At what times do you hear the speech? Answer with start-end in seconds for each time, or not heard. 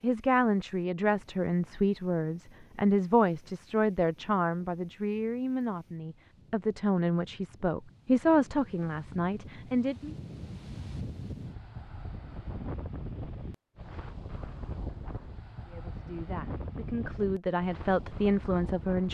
0.0-10.2, 15.7-19.0.